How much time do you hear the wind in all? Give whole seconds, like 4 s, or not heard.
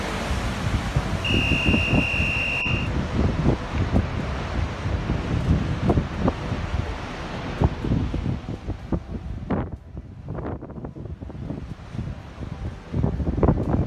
14 s.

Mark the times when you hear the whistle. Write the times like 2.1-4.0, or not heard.
1.2-2.9.